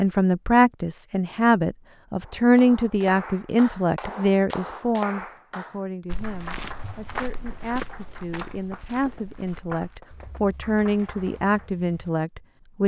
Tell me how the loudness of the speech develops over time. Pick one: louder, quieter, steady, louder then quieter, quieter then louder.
quieter then louder.